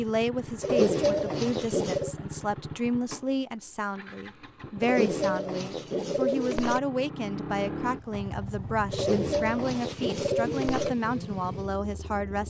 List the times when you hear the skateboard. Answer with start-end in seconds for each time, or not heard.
not heard.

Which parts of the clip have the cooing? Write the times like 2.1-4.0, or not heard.
0.6-2.1, 4.8-6.8, 8.9-10.9.